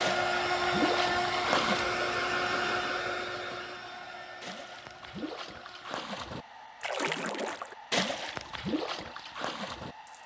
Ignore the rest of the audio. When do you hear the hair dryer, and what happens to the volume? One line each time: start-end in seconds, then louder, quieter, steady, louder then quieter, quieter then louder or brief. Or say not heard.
0.0-10.2 quieter.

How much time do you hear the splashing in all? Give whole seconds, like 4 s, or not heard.
8 s.